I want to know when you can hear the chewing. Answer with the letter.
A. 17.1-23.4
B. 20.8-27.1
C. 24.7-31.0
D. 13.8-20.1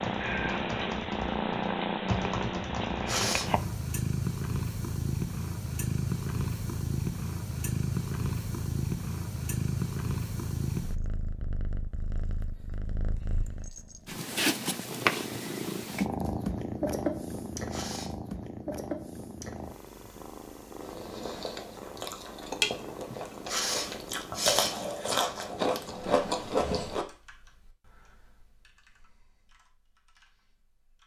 B.